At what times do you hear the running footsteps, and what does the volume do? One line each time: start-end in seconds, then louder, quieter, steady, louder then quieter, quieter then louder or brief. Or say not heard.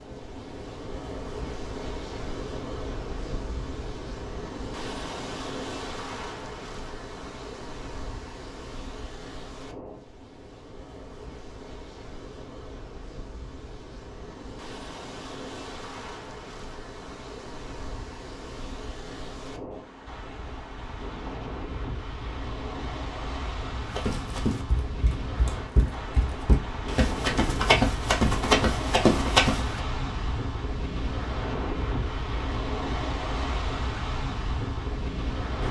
23.9-29.8 louder.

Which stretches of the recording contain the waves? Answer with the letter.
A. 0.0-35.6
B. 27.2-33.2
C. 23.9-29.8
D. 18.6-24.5
A.